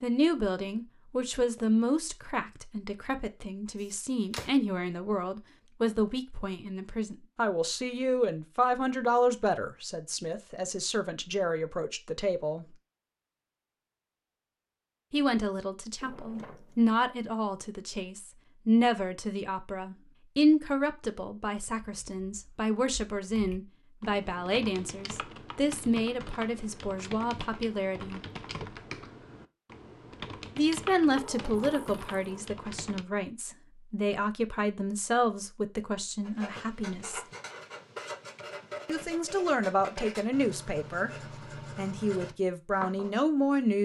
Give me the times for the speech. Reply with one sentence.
The speech can be heard from 0.0 to 12.7 s, from 15.1 to 28.2 s, from 30.6 to 37.2 s, from 38.9 to 41.1 s and from 41.8 to 43.7 s.